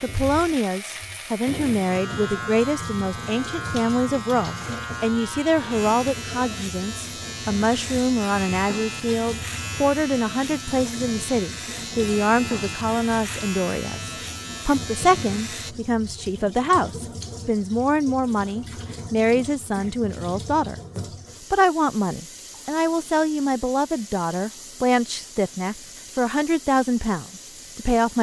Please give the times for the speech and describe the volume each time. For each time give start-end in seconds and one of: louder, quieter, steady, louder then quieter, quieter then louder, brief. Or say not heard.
0.0-28.1 steady.